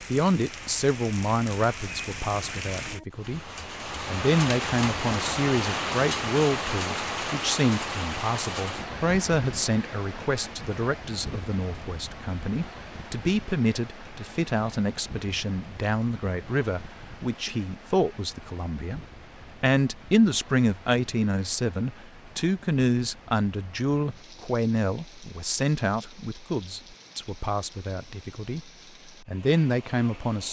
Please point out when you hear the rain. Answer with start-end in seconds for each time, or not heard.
0.0-30.4.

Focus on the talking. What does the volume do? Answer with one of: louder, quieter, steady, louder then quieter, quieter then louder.
steady.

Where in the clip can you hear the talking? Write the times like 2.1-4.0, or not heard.
0.1-3.4, 4.0-30.4.